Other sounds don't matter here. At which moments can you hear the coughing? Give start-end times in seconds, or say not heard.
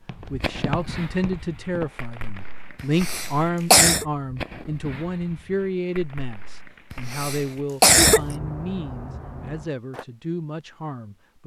2.8-4.0, 6.9-8.2.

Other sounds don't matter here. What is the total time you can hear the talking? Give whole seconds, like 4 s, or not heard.
11 s.